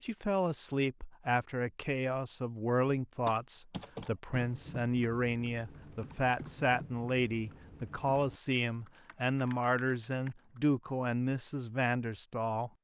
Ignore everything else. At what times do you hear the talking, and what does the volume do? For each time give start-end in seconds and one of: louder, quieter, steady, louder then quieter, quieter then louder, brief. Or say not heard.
0.0-12.7 steady.